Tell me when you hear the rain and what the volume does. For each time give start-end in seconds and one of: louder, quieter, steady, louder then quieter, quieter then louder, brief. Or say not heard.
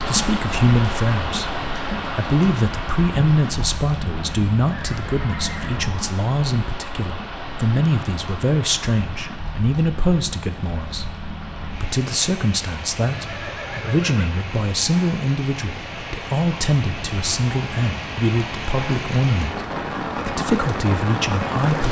0.0-21.8 quieter then louder.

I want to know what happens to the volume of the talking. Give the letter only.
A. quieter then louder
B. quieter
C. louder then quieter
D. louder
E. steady
E.